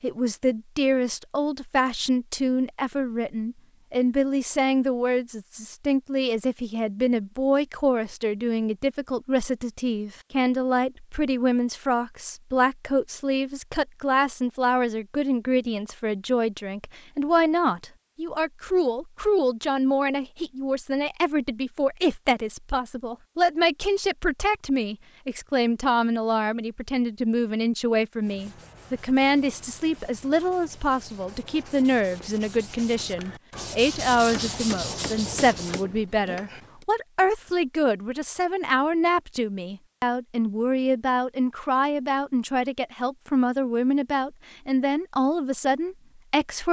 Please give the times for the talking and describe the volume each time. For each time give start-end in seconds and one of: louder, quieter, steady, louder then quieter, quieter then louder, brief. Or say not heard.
0.0-46.6 steady.